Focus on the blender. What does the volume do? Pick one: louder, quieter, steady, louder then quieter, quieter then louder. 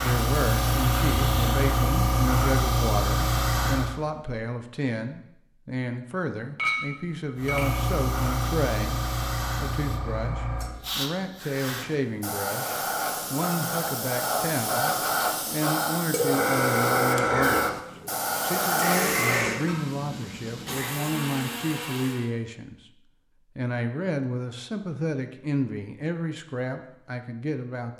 louder then quieter.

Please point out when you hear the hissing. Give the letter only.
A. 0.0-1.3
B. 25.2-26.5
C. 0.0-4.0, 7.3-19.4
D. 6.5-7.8
C.